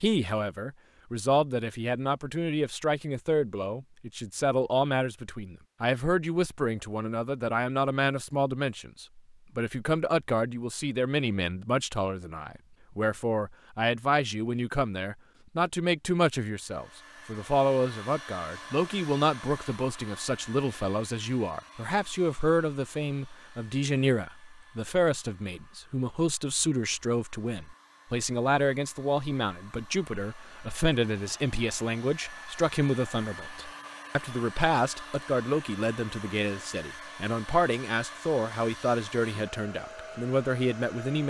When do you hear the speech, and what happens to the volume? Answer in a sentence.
You can hear the speech from 0.0 to 41.2 s, at a steady volume.